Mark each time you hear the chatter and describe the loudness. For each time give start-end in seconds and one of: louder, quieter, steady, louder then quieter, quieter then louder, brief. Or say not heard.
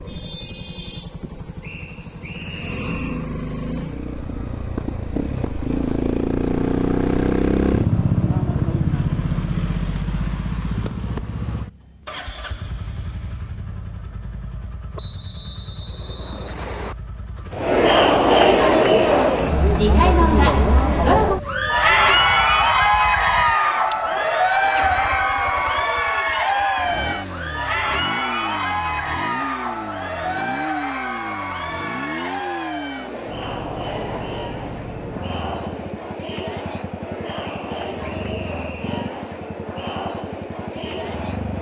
17.5-41.5 quieter.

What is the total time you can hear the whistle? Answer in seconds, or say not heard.
5 s.